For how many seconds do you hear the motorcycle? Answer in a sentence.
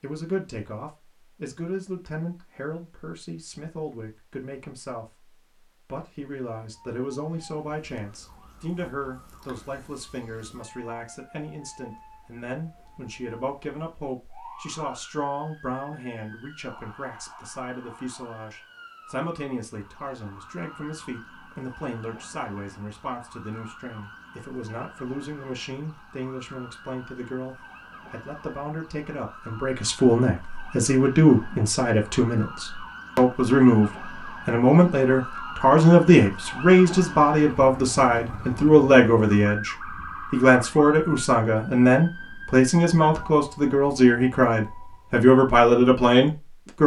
The motorcycle can't be heard in this clip.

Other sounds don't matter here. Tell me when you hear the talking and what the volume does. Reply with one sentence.
The talking can be heard from 0.0 to 46.8 s, getting louder.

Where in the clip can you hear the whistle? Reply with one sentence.
You can't hear the whistle here.